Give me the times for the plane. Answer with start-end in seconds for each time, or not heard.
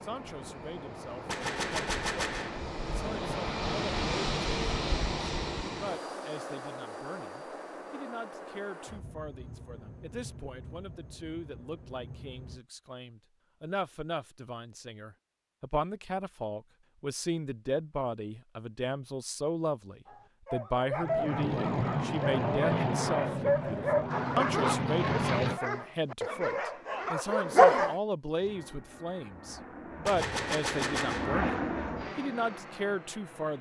0.0-12.6, 21.0-25.6, 28.4-33.5.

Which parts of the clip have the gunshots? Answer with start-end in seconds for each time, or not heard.
1.2-2.6, 30.1-31.4.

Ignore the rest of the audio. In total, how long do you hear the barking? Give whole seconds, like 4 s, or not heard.
8 s.